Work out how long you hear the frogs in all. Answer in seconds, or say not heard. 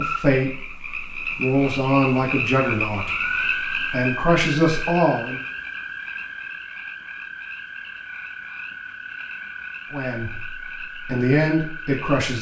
12 s.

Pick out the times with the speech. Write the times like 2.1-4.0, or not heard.
0.0-5.4, 9.9-12.3.